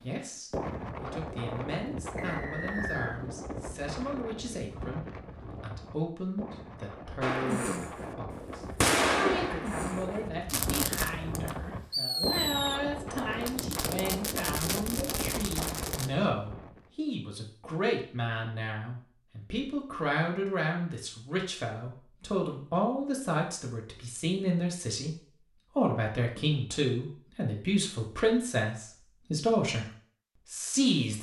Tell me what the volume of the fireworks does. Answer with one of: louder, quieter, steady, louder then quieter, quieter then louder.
quieter.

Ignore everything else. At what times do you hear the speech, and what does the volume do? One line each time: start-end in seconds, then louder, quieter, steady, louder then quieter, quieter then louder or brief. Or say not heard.
0.0-29.9 louder
30.4-31.1 brief.